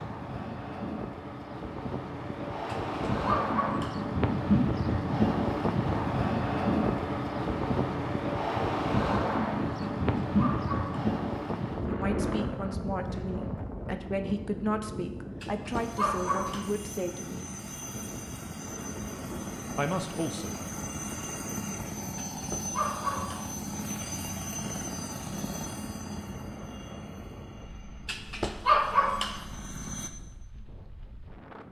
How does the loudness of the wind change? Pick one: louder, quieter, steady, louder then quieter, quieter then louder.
quieter.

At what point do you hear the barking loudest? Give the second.
29 s.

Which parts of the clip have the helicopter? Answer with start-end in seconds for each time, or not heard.
15.7-30.1.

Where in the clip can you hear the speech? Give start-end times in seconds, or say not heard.
11.8-17.5, 19.8-20.6.